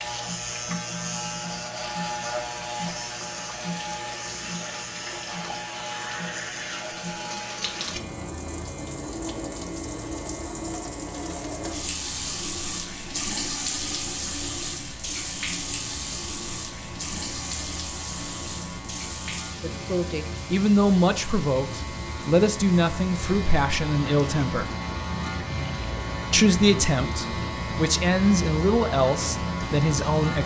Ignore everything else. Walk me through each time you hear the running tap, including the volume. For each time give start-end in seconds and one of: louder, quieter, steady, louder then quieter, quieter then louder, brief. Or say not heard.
0.0-30.4 louder then quieter.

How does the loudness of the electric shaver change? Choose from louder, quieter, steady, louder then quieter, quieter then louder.
quieter then louder.